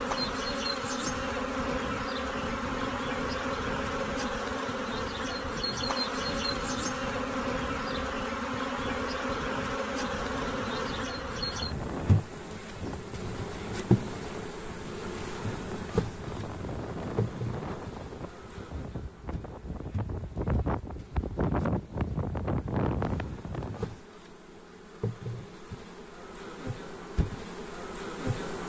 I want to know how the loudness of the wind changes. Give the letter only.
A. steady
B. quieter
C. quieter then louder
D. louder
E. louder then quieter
D.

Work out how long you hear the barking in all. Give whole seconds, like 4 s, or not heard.
not heard.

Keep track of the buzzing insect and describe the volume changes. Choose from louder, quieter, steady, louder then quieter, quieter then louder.
quieter.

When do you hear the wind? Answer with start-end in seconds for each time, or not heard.
0.0-23.9.